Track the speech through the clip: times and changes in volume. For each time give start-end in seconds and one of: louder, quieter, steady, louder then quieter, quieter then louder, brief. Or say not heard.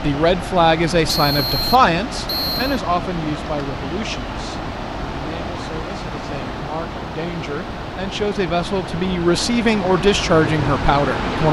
0.0-11.4 quieter then louder.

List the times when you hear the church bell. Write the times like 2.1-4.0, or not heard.
not heard.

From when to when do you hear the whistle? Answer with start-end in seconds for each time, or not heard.
1.1-2.8.